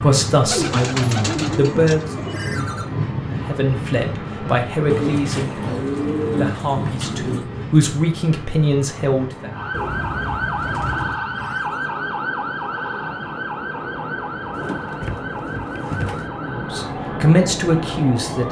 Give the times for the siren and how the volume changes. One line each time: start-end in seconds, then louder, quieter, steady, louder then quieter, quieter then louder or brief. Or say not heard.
9.5-18.4 quieter.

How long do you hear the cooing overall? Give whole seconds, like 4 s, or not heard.
8 s.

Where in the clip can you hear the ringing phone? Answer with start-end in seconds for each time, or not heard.
2.3-2.9, 11.3-11.9.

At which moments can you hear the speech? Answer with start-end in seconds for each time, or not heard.
0.0-2.0, 3.3-9.5, 16.4-18.4.